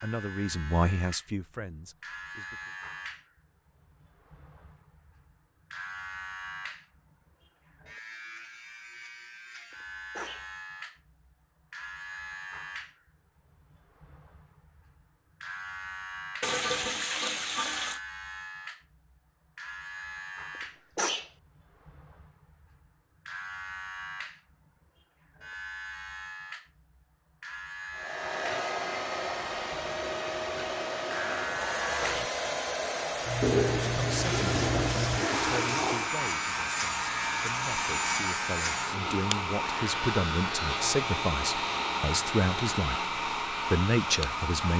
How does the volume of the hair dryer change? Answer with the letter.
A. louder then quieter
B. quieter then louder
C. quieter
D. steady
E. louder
D.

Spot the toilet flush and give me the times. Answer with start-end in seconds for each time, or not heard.
16.4-18.0, 33.4-36.1.